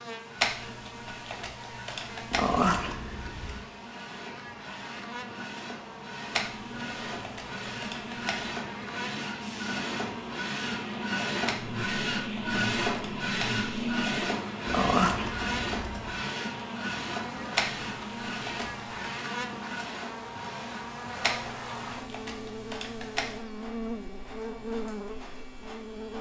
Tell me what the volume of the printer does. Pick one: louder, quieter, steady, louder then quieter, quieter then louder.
louder then quieter.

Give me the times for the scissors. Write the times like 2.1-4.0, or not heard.
2.3-3.6, 14.7-16.2.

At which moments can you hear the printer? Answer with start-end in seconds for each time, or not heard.
0.0-26.1.